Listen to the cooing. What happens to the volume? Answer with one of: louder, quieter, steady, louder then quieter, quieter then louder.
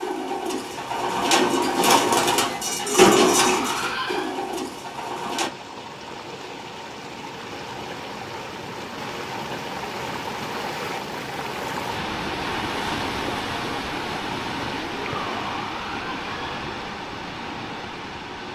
louder then quieter.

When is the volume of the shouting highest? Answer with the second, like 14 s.
3 s.